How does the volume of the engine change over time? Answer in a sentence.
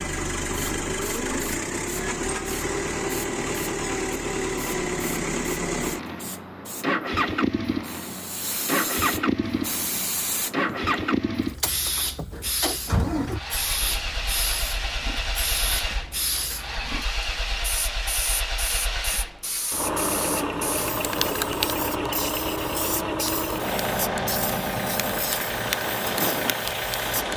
The volume of the engine stays about the same.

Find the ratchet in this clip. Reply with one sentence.
The ratchet can't be heard in this clip.